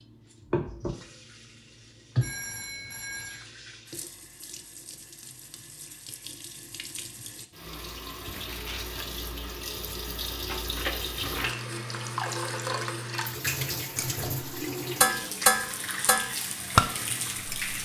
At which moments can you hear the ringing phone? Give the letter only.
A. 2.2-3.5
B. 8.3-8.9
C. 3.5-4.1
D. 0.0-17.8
A.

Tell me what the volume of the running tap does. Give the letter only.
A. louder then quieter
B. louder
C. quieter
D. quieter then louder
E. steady
D.